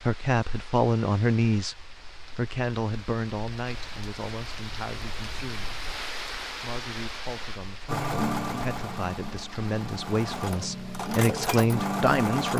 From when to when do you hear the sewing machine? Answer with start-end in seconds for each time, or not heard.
7.8-12.5.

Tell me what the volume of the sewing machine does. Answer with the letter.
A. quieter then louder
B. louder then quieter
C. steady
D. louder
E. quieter
A.